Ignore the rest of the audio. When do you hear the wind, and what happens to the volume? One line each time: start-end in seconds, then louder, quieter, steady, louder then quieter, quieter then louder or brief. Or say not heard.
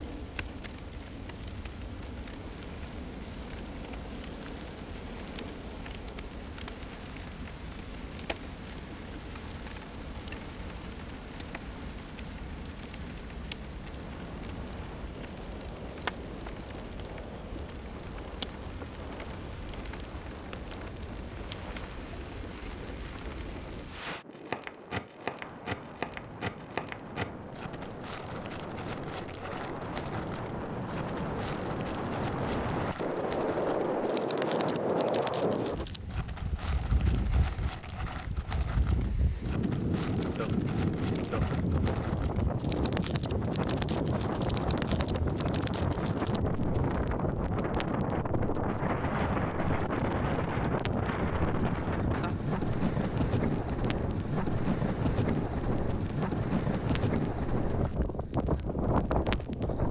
13.9-59.8 louder.